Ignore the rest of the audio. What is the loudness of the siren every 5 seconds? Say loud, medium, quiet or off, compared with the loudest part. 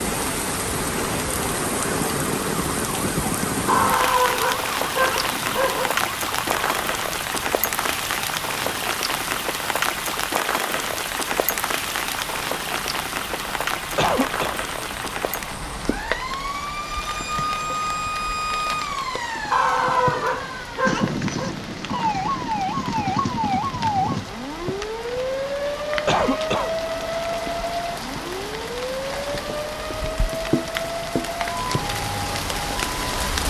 medium, medium, quiet, loud, loud, loud, medium.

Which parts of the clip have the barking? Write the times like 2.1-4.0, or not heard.
3.6-5.9, 19.5-21.6.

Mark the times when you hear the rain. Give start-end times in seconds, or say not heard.
0.0-33.4.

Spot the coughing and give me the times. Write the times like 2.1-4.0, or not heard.
13.9-14.6, 26.1-26.8.